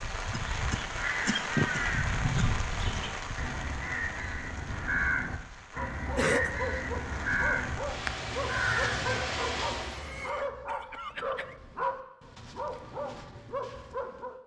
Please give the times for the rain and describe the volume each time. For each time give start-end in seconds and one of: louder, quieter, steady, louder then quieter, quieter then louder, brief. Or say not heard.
0.0-10.1 quieter then louder.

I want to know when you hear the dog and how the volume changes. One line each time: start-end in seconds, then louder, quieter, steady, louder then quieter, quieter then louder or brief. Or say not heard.
5.7-14.3 steady.